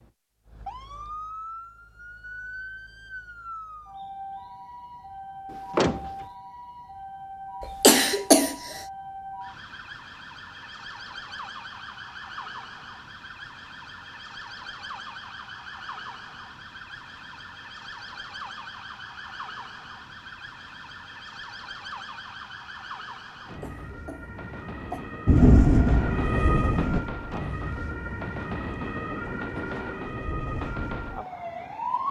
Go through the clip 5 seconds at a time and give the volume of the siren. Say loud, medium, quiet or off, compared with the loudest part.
medium, medium, medium, medium, medium, loud, loud.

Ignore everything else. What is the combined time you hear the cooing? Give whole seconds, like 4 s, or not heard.
not heard.